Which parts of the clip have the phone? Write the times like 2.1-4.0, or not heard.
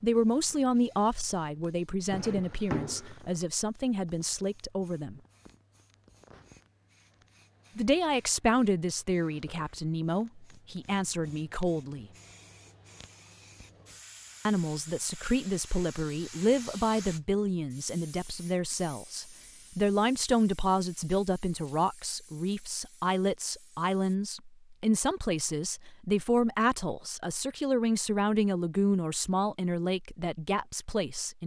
not heard.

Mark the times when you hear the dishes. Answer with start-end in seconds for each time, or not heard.
not heard.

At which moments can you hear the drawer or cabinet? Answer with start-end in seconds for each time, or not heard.
2.1-3.2.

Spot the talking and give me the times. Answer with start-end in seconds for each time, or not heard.
0.0-5.2, 7.8-12.1, 14.4-31.4.